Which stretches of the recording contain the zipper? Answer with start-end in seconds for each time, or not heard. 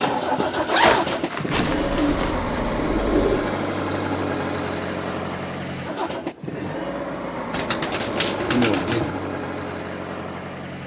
0.7-2.4.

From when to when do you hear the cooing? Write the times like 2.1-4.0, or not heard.
1.8-3.5, 7.5-9.2.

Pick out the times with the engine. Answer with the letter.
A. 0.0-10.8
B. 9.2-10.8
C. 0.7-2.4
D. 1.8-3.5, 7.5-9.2
A.